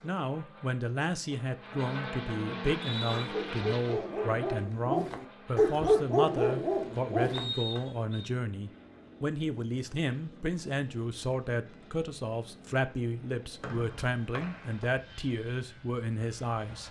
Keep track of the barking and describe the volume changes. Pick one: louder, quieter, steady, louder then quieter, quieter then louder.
louder then quieter.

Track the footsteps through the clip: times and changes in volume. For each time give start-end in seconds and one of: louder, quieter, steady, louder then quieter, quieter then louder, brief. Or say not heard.
not heard.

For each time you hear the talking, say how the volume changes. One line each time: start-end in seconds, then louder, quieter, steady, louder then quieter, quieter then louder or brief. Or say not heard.
0.0-16.8 steady.